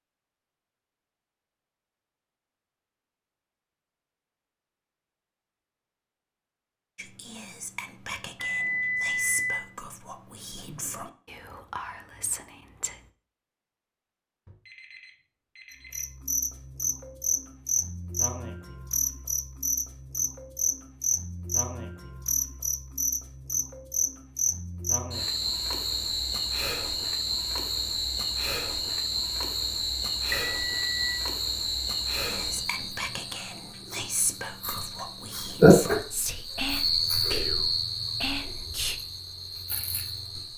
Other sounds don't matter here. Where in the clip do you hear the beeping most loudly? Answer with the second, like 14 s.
9 s.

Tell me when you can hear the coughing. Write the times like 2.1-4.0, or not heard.
not heard.